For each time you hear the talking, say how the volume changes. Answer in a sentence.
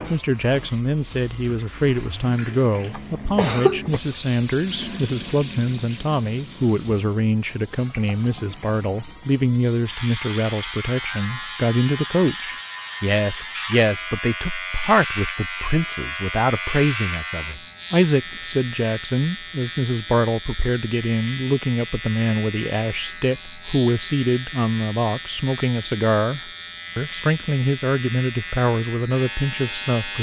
You can hear the talking from 0.1 to 30.1 s, at a steady volume.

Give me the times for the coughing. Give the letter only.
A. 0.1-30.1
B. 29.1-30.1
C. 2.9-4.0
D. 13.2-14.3
C.